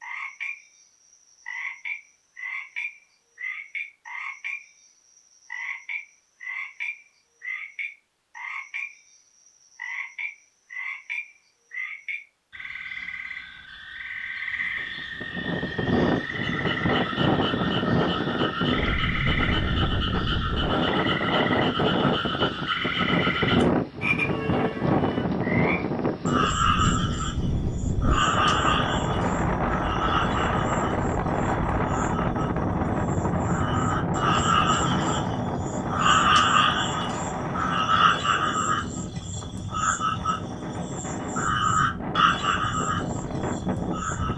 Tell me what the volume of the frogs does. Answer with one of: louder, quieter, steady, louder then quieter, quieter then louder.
louder.